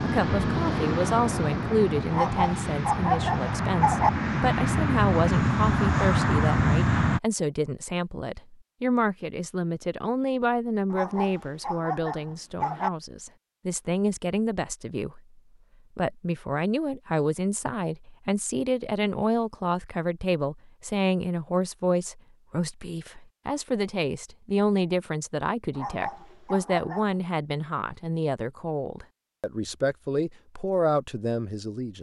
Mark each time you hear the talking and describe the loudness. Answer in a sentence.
You can hear the talking from 0.0 to 15.2 s, at a steady volume; and from 15.9 to 31.9 s, at a steady volume.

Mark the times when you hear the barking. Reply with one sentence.
You can hear the barking from 2.1 to 4.1 s, from 10.9 to 12.9 s and from 25.7 to 27.2 s.